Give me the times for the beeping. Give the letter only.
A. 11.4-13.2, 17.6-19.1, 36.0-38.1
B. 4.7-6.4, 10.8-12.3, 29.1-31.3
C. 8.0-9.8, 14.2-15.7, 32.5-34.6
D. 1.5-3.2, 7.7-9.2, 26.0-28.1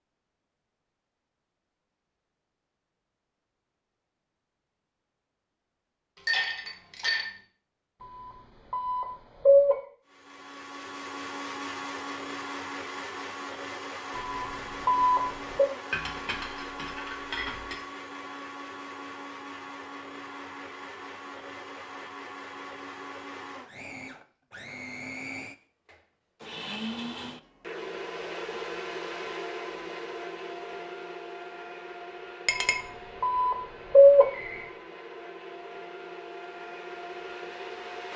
C.